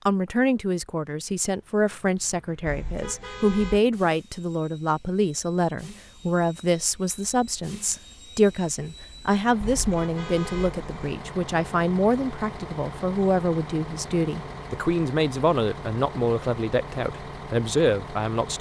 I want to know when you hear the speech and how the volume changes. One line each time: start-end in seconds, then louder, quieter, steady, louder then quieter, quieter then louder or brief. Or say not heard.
0.1-18.5 steady.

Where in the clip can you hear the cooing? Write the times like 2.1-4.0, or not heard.
not heard.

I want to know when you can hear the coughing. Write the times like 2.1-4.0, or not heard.
not heard.